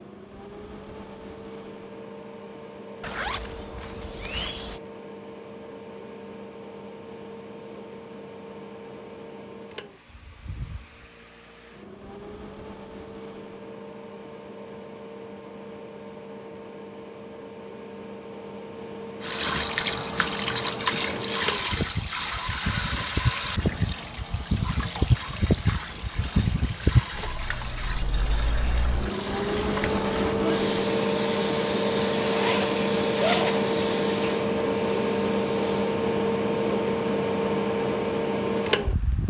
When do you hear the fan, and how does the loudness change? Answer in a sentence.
The fan can be heard from 0.0 to 39.2 s, getting louder.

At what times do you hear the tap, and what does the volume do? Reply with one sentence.
The tap can be heard from 19.2 to 36.1 s, getting quieter.